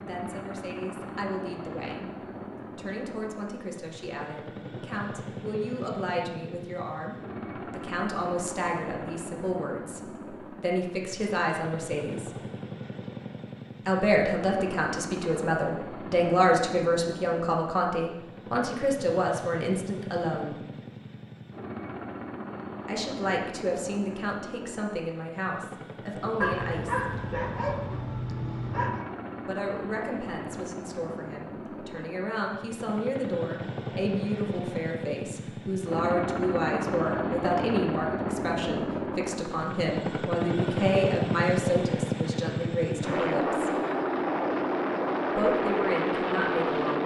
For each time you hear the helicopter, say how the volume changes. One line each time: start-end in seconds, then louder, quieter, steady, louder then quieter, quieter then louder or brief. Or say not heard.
0.0-47.0 louder.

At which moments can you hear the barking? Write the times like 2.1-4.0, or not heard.
26.4-29.1.